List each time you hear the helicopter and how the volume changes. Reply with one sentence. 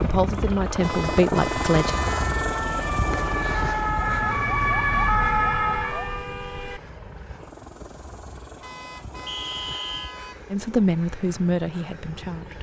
The helicopter can be heard from 0.0 to 12.5 s, getting quieter.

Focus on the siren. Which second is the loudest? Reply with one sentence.
The volume of the siren peaks at 5 seconds.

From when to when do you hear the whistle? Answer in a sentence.
You can hear the whistle from 9.2 to 10.2 s.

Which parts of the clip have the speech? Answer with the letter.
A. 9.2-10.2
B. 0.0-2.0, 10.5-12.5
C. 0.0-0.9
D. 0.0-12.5
B.